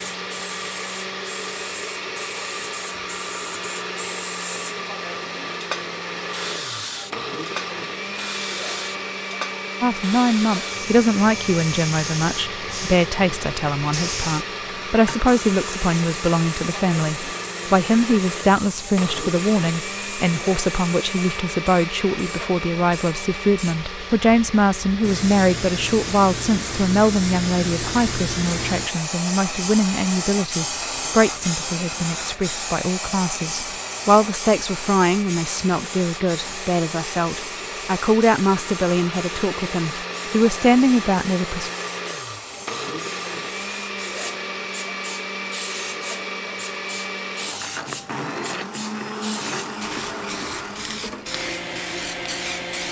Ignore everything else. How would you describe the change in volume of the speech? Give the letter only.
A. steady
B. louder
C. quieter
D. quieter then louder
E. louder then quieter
A.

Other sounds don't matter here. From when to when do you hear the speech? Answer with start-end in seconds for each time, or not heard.
9.8-41.7.